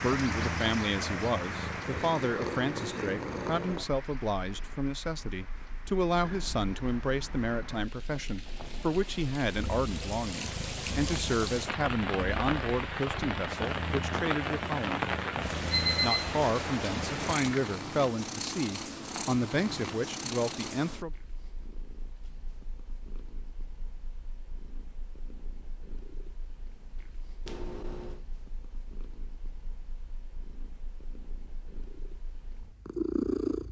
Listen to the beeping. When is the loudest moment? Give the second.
16 s.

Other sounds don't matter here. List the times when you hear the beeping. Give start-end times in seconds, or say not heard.
6.2-7.5, 15.7-16.2, 27.4-28.2.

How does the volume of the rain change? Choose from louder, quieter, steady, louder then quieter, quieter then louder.
quieter then louder.